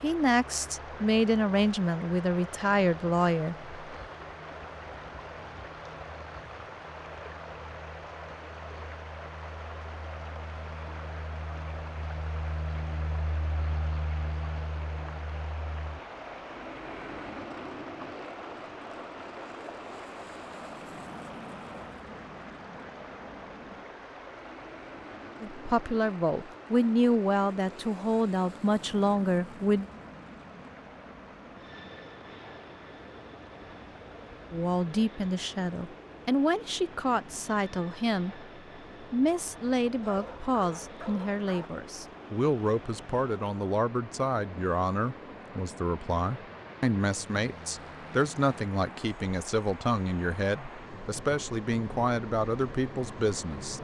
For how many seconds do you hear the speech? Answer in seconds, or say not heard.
27 s.